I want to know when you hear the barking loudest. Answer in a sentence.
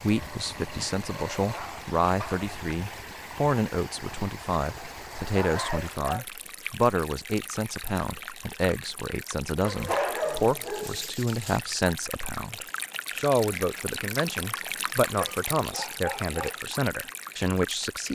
The volume of the barking peaks at 10 seconds.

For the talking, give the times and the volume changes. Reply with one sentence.
You can hear the talking from 0.0 to 18.1 s, at a steady volume.